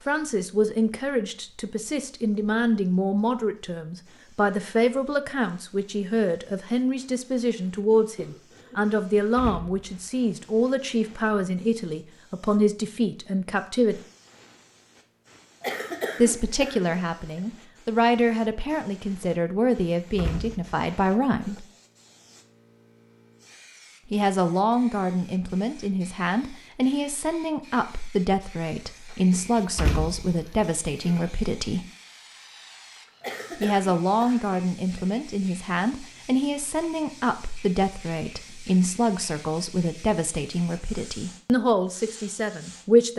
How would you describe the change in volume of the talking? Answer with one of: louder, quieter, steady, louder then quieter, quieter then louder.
steady.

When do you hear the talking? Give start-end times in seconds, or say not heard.
0.1-14.0, 16.1-21.6, 24.1-31.9, 33.5-43.1.